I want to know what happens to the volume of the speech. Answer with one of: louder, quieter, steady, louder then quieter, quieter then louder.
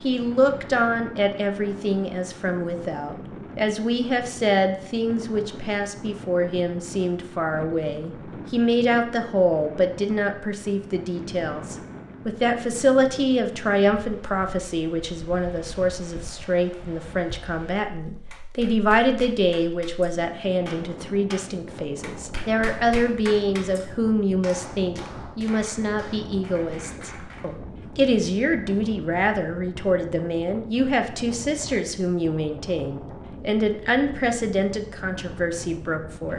steady.